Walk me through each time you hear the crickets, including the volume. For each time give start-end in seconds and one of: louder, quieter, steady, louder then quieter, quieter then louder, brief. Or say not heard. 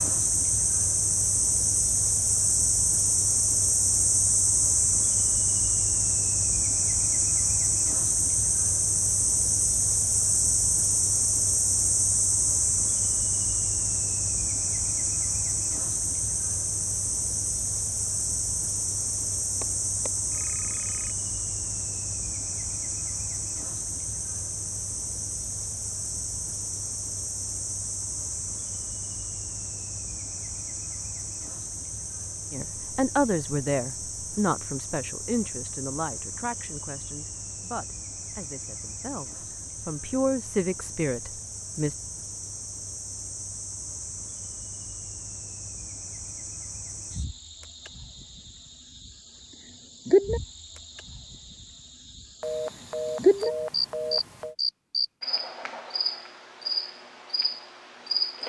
0.0-58.4 quieter then louder.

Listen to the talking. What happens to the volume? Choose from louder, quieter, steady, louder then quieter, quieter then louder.
quieter then louder.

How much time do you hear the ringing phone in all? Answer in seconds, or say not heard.
4 s.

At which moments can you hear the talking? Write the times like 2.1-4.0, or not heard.
32.5-42.0.